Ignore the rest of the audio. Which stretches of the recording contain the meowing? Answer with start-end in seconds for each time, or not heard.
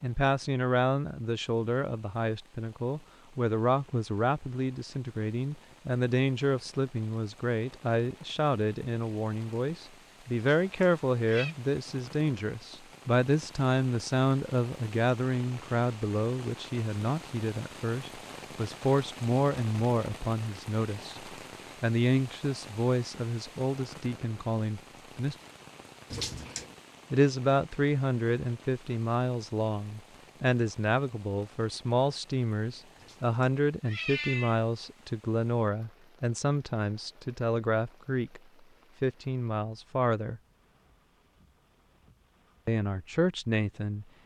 10.6-11.6, 26.1-26.6, 33.0-34.6.